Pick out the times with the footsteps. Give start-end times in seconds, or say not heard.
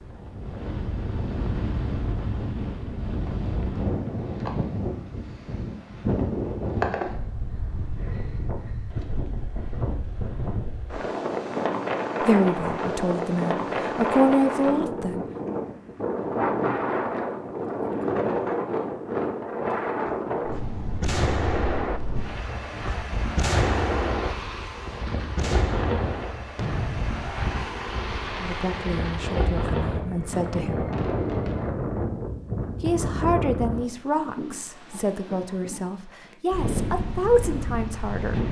not heard.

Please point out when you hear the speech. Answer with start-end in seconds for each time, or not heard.
12.2-15.2, 28.4-30.9, 32.8-38.4.